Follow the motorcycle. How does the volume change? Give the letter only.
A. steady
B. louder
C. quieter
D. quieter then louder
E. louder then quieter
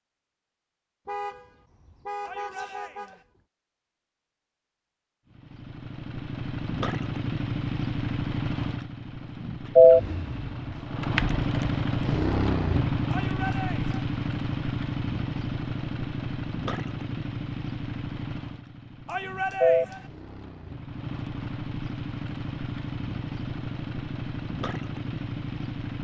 E.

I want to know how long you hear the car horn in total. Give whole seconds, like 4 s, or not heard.
2 s.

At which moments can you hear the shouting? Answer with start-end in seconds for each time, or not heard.
2.2-3.2, 13.1-14.1, 19.1-20.1.